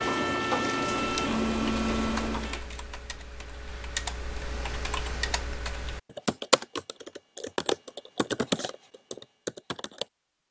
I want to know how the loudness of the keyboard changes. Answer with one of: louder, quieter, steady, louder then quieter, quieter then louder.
louder.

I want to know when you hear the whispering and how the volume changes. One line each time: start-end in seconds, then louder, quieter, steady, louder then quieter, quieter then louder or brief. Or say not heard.
not heard.